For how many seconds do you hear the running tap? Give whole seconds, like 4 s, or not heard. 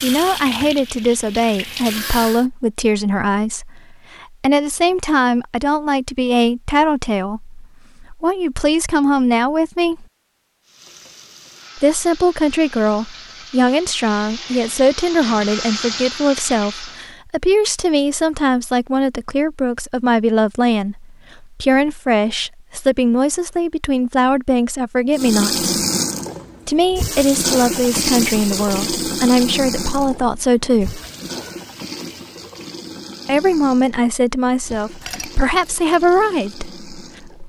21 s.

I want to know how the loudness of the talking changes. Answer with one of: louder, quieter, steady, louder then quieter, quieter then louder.
steady.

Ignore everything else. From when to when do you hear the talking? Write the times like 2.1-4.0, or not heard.
0.0-10.1, 11.8-25.7, 26.6-31.0, 33.2-37.3.